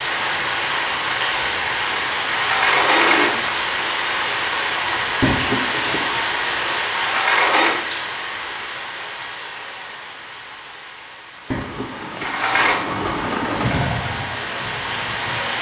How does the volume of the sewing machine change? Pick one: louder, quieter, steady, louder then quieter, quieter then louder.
louder then quieter.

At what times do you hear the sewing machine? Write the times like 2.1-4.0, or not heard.
11.3-15.5.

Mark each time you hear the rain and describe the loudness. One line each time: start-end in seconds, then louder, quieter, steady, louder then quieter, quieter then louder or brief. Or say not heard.
0.0-15.5 quieter then louder.